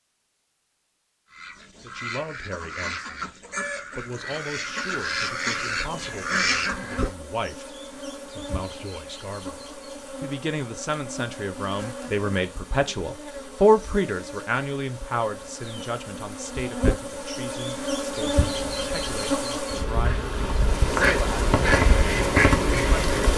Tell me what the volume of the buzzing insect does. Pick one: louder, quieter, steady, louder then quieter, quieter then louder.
louder.